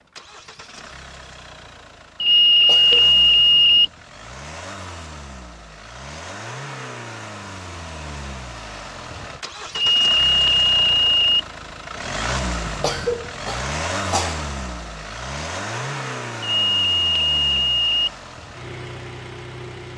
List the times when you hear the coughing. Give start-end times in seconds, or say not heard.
2.6-3.1, 12.8-14.4.